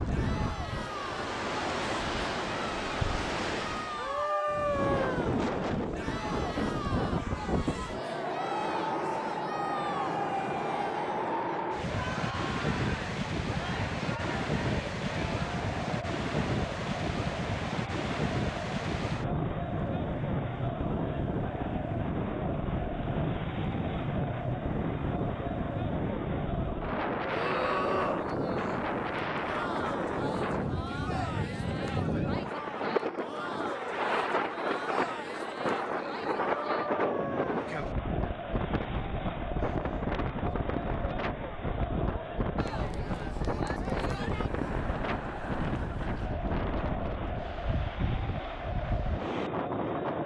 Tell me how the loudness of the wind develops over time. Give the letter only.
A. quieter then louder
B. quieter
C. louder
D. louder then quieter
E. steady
E.